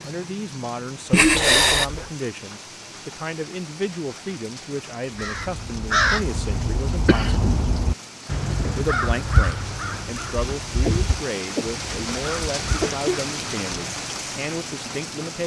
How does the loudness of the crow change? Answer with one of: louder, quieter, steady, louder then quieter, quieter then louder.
quieter.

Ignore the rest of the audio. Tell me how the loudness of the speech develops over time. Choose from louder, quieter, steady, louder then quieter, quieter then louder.
steady.